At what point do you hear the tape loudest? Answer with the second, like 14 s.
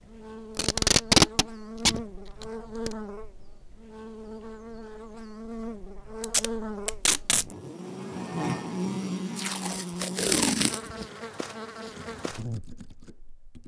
1 s.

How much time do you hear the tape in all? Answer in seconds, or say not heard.
5 s.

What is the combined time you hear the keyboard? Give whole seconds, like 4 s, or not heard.
2 s.